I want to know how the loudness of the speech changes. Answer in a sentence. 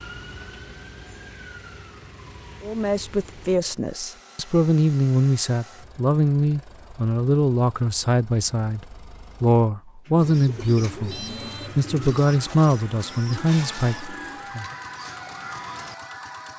The volume of the speech stays about the same.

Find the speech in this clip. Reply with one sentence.
You can hear the speech from 2.6 to 14.7 s.